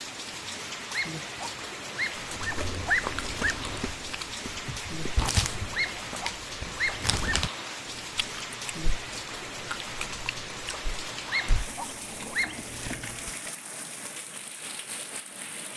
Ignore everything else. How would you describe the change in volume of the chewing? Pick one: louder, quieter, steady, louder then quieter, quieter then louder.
quieter.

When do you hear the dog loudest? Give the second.
3 s.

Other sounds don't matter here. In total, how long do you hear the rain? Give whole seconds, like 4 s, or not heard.
16 s.